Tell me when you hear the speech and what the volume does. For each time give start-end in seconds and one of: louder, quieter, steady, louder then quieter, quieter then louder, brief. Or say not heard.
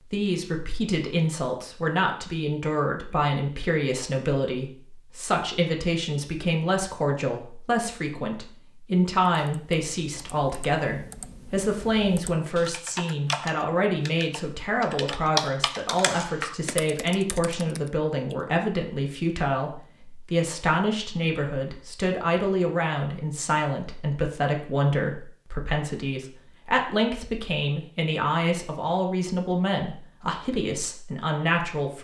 0.0-31.9 steady.